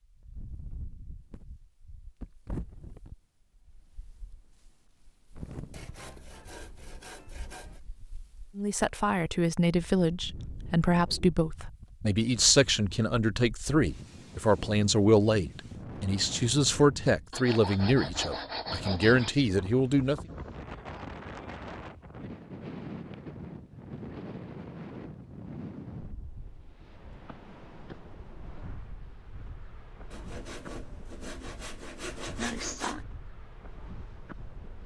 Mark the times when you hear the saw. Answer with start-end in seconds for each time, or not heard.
5.7-7.8, 17.3-19.4, 30.1-33.0.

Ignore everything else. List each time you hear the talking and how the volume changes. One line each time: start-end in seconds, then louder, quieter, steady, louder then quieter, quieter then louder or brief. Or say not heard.
8.6-20.2 steady.